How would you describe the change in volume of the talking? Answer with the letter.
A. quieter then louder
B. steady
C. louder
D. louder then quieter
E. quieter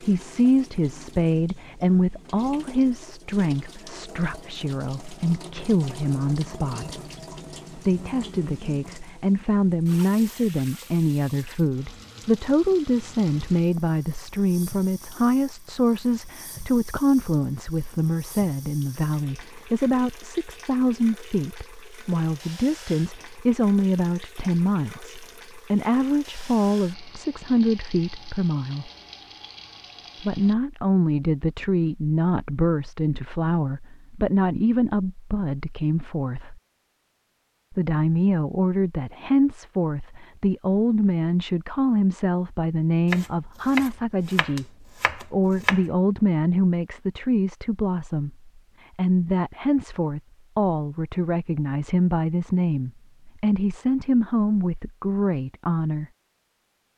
B.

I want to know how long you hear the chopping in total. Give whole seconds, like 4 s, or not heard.
3 s.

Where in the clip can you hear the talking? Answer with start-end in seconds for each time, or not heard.
0.0-7.0, 7.8-28.9, 30.2-36.6, 37.7-56.0.